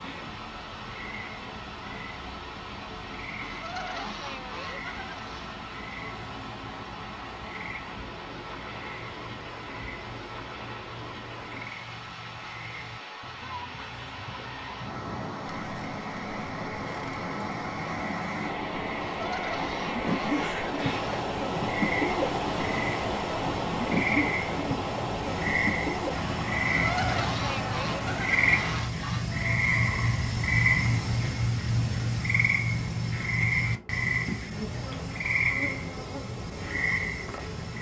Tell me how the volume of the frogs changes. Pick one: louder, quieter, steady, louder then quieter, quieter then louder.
louder.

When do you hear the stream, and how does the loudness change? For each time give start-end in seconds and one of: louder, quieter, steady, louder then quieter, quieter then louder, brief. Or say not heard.
0.0-28.9 louder.